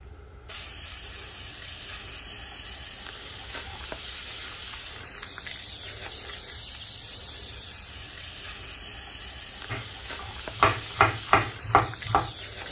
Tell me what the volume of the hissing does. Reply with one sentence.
The volume of the hissing stays about the same.